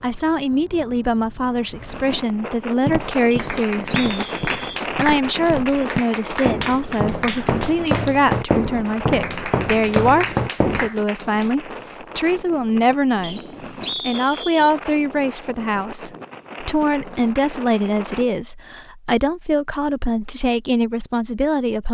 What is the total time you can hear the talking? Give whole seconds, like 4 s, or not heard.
21 s.